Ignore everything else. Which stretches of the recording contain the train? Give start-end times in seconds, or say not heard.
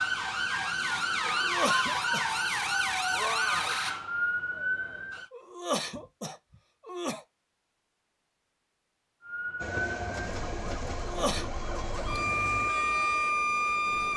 9.6-14.1.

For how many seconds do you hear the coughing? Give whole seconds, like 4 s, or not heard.
3 s.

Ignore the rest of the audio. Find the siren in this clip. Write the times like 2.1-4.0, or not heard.
0.0-5.2, 9.2-14.1.